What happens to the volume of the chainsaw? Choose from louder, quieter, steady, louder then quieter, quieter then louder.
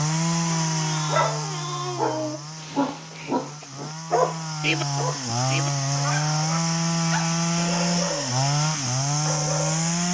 quieter then louder.